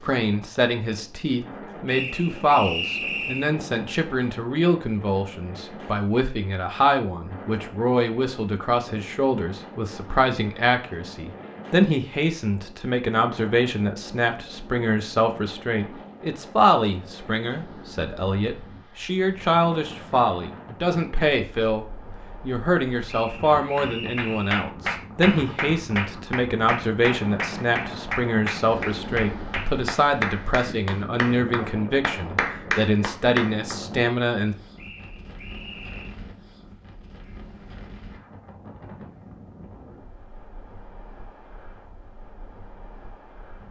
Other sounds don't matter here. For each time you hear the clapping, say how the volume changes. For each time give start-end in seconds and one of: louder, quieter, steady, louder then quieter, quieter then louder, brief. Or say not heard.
23.8-33.8 steady.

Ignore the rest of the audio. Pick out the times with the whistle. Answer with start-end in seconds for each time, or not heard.
1.9-3.5, 23.1-24.6, 34.8-36.1.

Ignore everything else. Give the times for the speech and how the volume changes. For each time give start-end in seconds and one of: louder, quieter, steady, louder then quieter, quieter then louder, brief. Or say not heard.
0.0-34.5 steady.